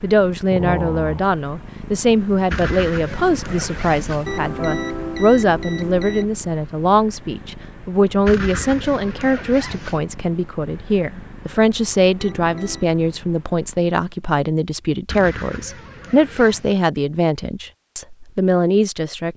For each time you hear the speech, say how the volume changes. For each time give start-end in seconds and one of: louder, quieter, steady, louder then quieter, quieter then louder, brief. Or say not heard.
0.0-19.3 steady.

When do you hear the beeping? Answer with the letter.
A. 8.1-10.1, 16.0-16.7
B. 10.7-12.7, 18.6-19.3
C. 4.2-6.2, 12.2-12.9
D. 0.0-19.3
C.